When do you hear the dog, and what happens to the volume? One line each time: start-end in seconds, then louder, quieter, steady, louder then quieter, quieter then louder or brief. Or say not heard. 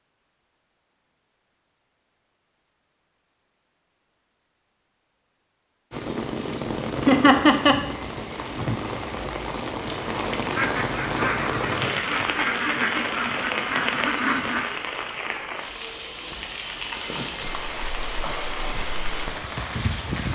not heard.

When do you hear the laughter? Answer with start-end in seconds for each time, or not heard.
7.0-7.8.